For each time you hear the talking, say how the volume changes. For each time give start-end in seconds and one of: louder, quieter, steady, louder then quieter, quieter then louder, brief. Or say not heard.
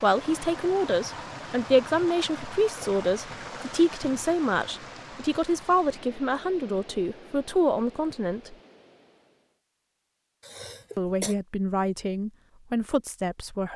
0.0-8.6 steady
10.9-13.7 brief.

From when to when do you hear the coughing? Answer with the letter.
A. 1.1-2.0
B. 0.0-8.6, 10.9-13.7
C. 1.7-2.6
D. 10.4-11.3
D.